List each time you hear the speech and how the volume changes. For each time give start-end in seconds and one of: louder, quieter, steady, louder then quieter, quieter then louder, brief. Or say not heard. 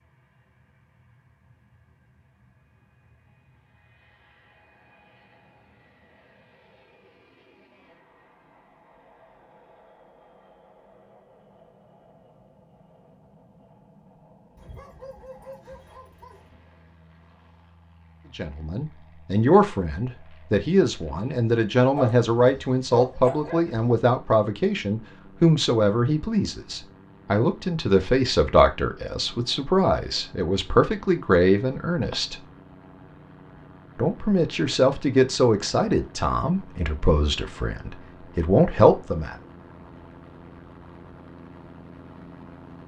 18.4-32.4 steady
34.0-39.4 quieter then louder.